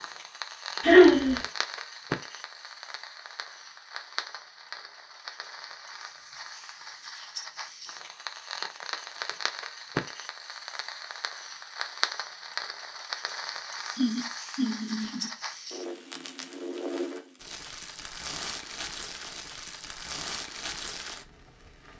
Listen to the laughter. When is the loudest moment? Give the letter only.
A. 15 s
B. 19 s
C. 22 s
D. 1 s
D.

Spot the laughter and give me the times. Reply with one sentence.
The laughter can be heard from 0.8 to 1.4 s and from 13.9 to 15.3 s.